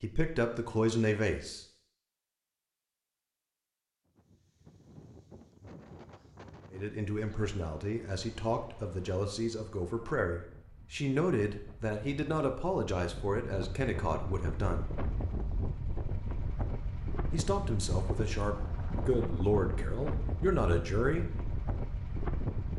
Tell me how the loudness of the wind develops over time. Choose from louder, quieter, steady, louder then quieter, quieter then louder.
louder.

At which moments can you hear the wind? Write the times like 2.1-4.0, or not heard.
4.0-22.7.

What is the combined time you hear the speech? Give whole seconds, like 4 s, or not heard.
14 s.